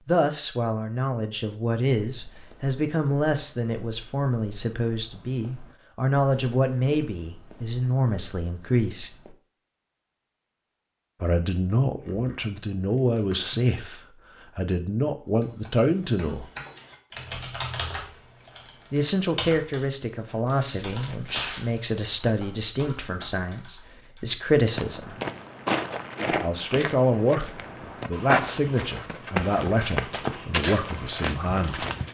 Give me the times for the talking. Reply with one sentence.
You can hear the talking from 0.1 to 9.1 s, from 11.2 to 16.5 s, from 18.9 to 25.1 s and from 26.3 to 31.9 s.